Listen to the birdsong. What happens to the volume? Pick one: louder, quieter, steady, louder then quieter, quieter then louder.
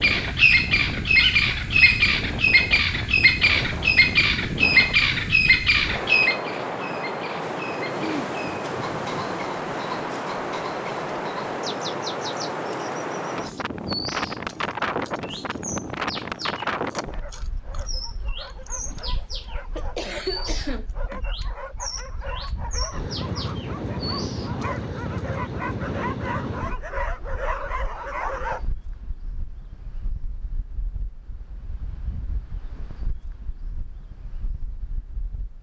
quieter.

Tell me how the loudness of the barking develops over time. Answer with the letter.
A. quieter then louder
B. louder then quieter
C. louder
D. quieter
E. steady
C.